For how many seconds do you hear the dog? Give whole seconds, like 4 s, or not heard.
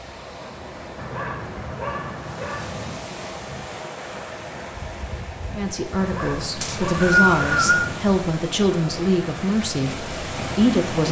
4 s.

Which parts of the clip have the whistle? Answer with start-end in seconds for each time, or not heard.
6.6-7.9.